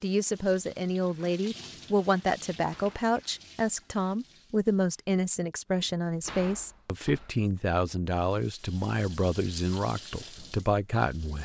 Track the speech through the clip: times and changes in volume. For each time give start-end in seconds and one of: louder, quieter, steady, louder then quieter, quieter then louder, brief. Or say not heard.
0.0-11.3 steady.